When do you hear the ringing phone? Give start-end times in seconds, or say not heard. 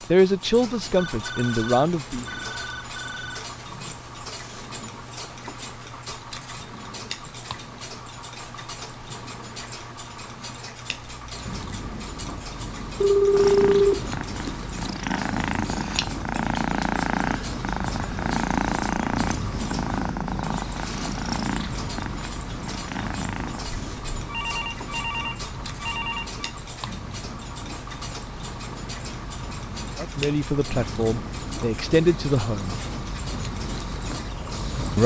0.9-3.5, 13.0-14.6, 24.2-26.4.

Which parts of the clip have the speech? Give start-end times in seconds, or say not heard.
0.1-2.2, 29.9-32.8.